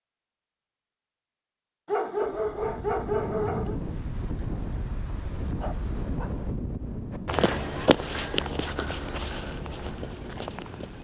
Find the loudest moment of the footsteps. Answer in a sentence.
The loudest moment of the footsteps is at 8 seconds.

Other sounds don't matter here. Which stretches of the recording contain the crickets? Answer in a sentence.
The crickets can't be heard in this clip.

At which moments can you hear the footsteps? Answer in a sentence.
You can hear the footsteps from 7.1 to 10.9 s.